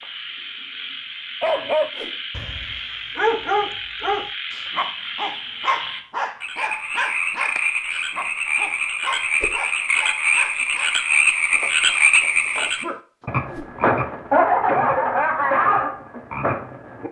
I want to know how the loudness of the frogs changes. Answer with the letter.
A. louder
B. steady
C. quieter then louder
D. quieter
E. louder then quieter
A.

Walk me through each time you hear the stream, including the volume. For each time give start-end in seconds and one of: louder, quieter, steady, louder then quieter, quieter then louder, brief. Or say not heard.
not heard.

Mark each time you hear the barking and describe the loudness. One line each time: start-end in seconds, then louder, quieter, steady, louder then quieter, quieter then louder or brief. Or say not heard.
1.4-13.3 quieter.